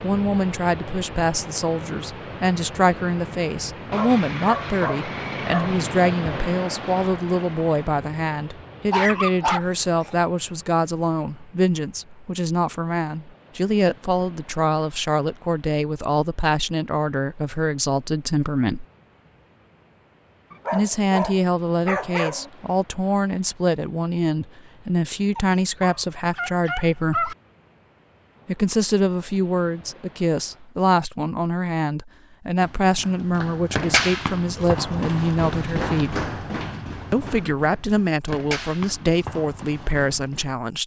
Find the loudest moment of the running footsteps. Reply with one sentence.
The volume of the running footsteps peaks at 34 seconds.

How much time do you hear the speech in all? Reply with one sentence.
The speech can be heard for 37 seconds in total.